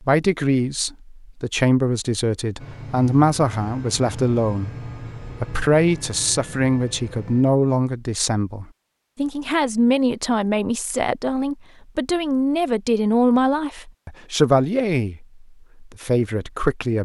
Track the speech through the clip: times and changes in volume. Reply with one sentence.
You can hear the speech from 0.0 to 17.0 s, at a steady volume.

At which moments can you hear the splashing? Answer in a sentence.
You can't hear the splashing here.